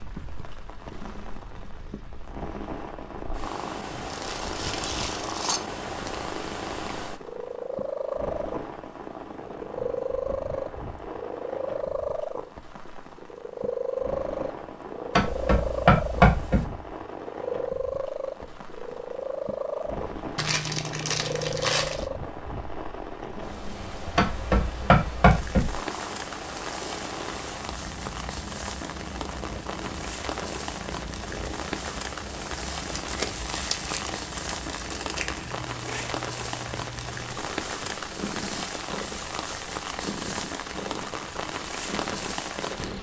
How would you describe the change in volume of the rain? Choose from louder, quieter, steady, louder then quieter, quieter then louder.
louder.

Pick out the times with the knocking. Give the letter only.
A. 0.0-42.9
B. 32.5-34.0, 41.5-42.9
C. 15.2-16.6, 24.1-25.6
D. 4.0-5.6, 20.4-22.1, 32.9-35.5
C.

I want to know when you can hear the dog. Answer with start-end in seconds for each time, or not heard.
not heard.